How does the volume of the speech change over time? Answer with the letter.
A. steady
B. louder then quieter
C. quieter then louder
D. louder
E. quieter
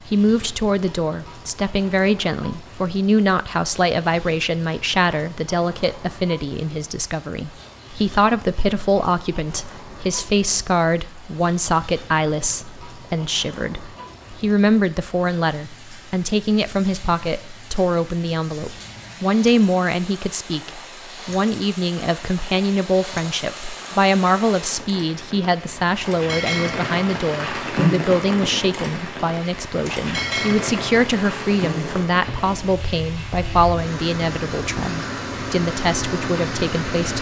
A.